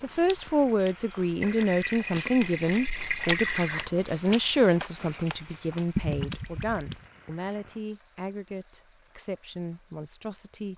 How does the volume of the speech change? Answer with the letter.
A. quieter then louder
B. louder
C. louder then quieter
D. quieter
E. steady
D.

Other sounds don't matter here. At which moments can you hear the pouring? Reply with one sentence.
The pouring can be heard from 1.4 to 3.9 s and from 6.0 to 7.0 s.